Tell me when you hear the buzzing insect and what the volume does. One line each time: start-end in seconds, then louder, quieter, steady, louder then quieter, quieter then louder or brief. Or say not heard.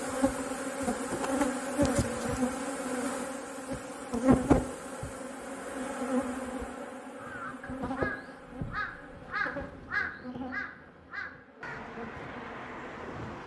0.0-13.4 quieter.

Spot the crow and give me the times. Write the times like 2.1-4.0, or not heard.
7.2-13.4.